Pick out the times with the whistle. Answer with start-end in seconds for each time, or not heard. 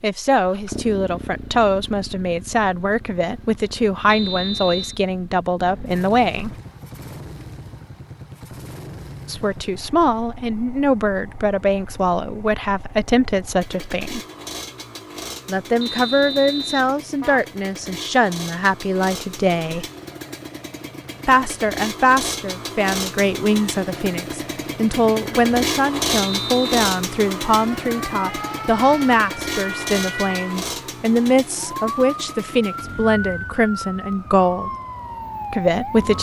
4.0-5.0, 15.8-16.9, 26.2-26.8.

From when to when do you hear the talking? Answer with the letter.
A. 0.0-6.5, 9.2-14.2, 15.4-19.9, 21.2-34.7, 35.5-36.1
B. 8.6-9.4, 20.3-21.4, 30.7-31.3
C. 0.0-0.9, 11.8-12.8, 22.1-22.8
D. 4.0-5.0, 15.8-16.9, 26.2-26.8
A.